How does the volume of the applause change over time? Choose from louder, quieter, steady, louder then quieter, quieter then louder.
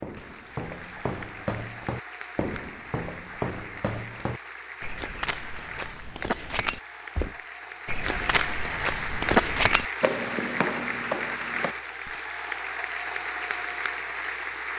louder.